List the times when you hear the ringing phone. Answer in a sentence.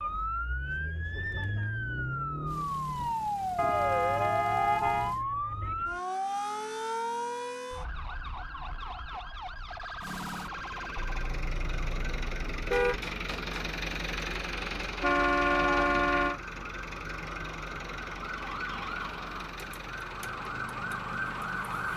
You can't hear the ringing phone here.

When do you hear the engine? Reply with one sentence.
You can hear the engine from 2.5 to 5.2 s and from 10.0 to 21.9 s.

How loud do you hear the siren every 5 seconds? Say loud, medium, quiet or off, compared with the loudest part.
loud, loud, medium, medium, loud.